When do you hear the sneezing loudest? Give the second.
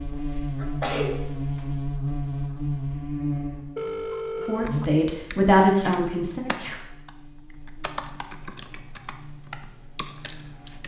1 s.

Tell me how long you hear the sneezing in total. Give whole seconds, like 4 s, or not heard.
2 s.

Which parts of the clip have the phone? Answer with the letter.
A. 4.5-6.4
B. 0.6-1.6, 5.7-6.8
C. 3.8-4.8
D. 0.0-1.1
C.